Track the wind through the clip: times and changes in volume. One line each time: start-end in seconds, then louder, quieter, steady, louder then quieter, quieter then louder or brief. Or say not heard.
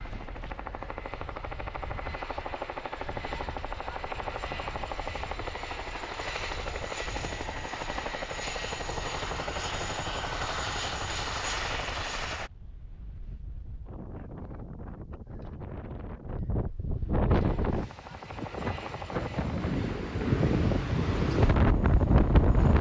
0.0-22.7 louder.